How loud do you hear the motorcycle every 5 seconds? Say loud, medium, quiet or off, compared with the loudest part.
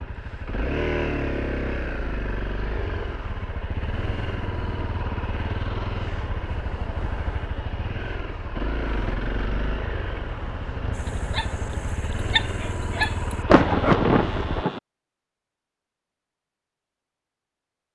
loud, loud, loud, off.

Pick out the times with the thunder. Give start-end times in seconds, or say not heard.
13.4-14.8.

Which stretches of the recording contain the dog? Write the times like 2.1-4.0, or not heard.
10.9-13.9.